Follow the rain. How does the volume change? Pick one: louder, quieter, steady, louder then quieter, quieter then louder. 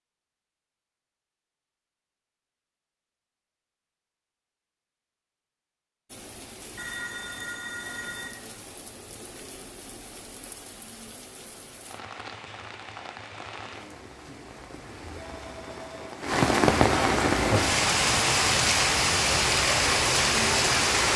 louder.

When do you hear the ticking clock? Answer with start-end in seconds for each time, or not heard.
not heard.